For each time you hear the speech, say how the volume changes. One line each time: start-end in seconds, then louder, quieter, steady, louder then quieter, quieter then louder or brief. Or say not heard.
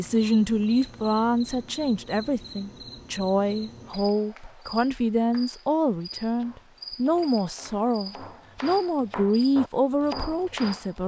0.0-11.0 steady.